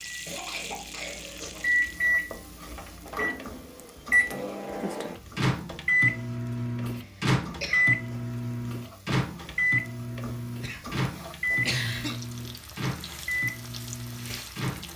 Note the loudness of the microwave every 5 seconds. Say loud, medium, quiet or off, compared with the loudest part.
loud, loud, medium.